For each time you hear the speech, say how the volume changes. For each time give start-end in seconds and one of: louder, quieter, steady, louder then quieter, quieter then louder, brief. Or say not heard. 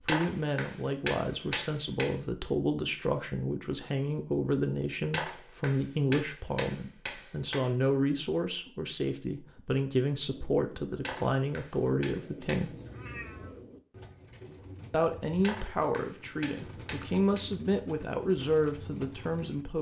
0.0-12.8 steady
14.9-19.7 quieter then louder.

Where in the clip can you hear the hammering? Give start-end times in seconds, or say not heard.
0.1-2.1, 5.1-7.7, 11.0-12.7, 15.4-17.4.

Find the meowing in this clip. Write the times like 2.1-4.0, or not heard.
12.6-13.7.